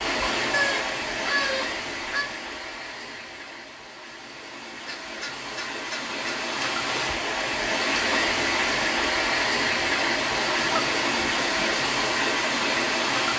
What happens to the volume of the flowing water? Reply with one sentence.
The volume of the flowing water goes down, then up.